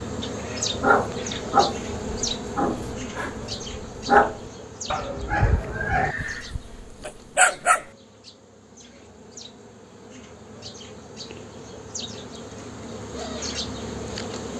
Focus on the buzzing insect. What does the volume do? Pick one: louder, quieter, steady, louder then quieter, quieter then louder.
quieter then louder.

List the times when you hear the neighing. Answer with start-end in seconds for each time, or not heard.
5.6-6.5.